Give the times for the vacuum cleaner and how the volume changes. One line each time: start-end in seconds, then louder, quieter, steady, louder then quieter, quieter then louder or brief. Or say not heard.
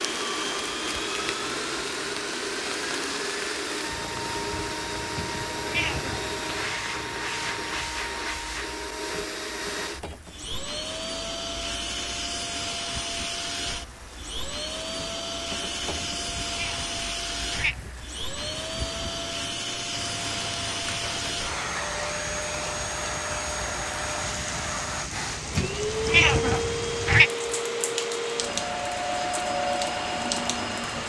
0.0-31.0 steady.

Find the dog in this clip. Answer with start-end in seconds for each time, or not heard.
not heard.